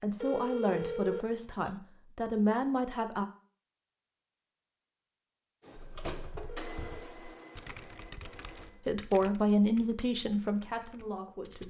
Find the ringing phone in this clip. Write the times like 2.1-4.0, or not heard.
0.2-1.8, 6.5-7.0.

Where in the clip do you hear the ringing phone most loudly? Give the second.
1 s.